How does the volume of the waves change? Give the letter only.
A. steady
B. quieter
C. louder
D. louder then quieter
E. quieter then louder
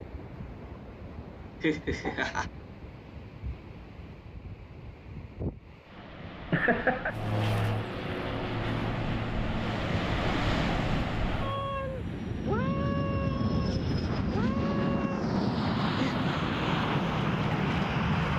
D.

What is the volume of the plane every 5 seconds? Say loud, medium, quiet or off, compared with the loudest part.
off, medium, loud, loud.